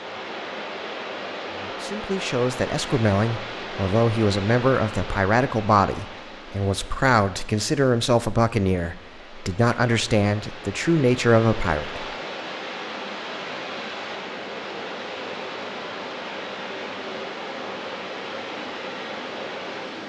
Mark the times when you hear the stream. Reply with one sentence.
The stream can be heard from 0.0 to 20.0 s.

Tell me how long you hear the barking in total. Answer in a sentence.
You can't hear the barking here.